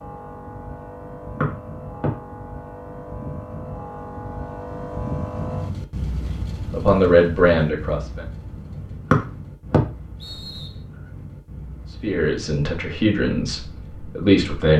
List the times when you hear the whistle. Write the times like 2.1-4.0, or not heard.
1.4-2.1, 9.1-10.8.